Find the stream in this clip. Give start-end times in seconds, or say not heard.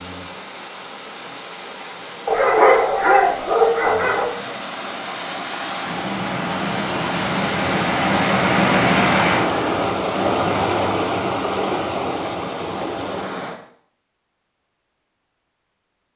0.0-13.6.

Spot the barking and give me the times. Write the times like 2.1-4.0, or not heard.
2.2-4.3.